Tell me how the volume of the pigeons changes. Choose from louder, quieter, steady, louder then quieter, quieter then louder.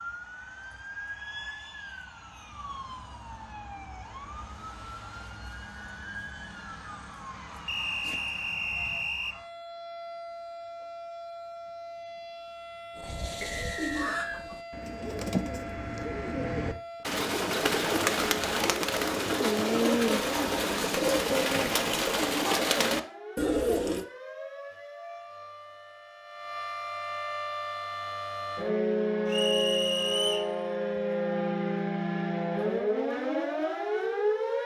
louder.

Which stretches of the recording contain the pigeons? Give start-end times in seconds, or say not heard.
12.9-24.1.